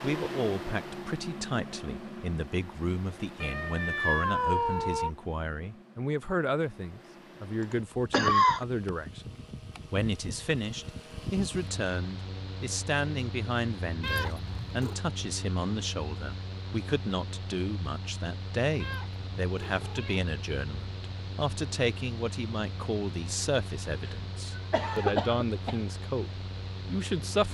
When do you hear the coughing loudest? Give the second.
8 s.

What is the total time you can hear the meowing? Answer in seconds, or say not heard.
4 s.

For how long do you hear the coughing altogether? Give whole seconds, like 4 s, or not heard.
2 s.